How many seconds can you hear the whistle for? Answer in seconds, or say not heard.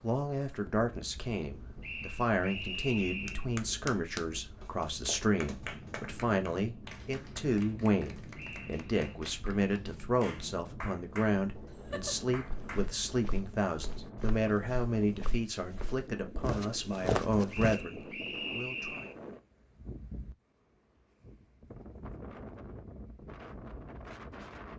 4 s.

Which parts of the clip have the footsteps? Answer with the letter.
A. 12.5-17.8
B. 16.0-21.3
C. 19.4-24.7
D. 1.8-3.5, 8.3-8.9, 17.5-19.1
A.